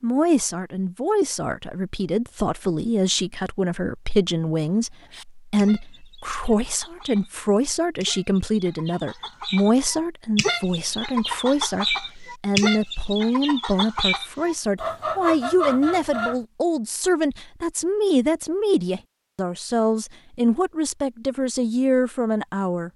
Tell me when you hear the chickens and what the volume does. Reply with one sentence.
You can hear the chickens from 4.6 to 16.4 s, getting louder.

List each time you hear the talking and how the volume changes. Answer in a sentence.
You can hear the talking from 0.0 to 22.9 s, at a steady volume.